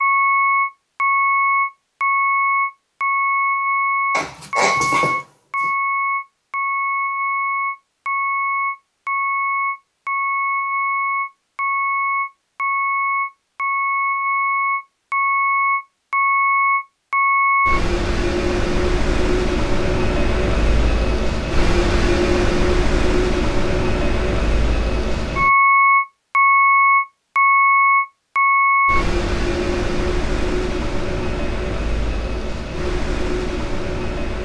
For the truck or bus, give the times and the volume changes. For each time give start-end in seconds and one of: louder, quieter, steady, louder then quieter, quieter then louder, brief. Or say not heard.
0.0-34.4 steady.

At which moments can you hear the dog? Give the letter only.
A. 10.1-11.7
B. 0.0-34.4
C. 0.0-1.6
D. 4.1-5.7
D.